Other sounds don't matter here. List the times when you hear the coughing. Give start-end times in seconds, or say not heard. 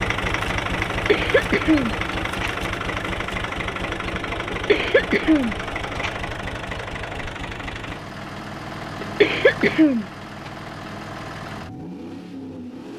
0.9-2.5, 4.5-6.2, 9.0-10.5.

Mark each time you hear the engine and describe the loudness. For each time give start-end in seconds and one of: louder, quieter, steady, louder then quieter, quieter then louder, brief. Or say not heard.
0.0-12.9 quieter.